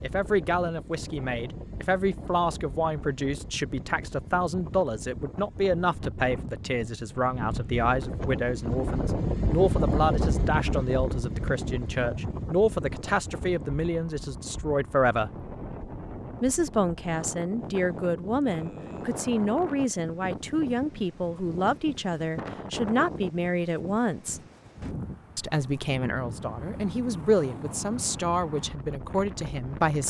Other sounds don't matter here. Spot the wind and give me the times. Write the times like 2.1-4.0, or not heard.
0.0-30.0.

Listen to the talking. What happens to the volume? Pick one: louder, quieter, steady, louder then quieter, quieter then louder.
steady.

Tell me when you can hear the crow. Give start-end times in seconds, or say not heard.
not heard.